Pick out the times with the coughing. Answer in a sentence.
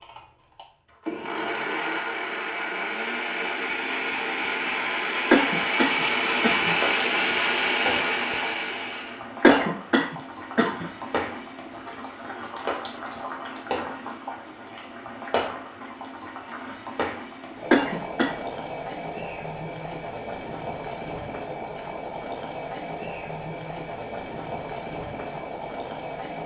The coughing can be heard from 5.3 to 6.8 s, from 9.4 to 10.8 s and from 17.7 to 18.3 s.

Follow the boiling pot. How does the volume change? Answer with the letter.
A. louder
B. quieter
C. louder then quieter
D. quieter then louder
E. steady
E.